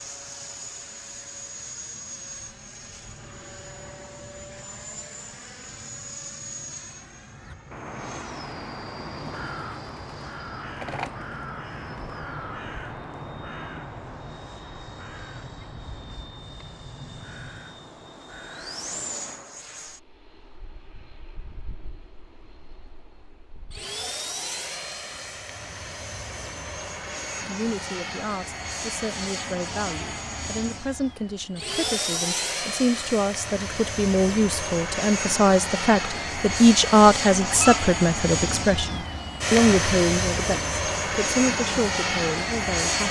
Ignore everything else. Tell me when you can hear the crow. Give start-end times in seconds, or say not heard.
7.3-19.7.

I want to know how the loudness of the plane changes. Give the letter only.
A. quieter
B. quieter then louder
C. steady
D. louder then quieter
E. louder
E.